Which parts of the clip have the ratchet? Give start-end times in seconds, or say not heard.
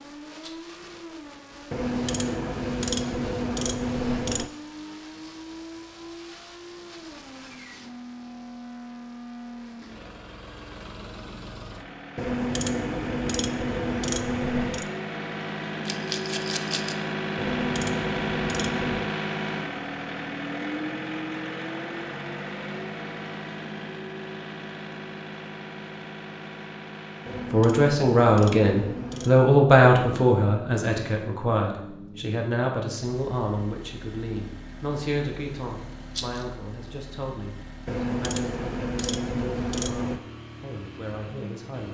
1.7-4.5, 12.2-14.9, 17.4-19.1, 27.2-29.4, 37.9-40.2.